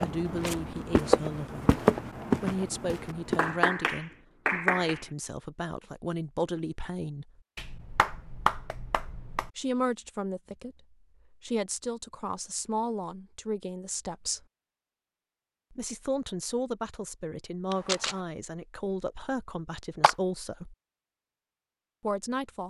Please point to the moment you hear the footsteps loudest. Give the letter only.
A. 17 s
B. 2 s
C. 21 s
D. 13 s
B.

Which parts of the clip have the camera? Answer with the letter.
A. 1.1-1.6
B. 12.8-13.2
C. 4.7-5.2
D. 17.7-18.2
D.